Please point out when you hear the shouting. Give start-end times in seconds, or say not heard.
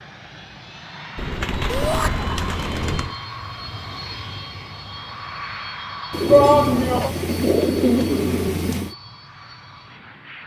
1.7-2.1, 6.2-7.1.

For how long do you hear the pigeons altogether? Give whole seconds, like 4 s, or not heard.
5 s.